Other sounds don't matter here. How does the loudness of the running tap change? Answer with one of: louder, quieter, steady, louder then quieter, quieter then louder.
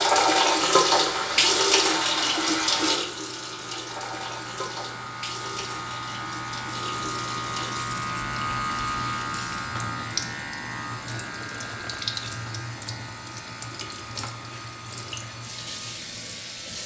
quieter.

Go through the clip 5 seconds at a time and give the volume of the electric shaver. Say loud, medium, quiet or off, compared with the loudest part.
medium, loud, medium, quiet.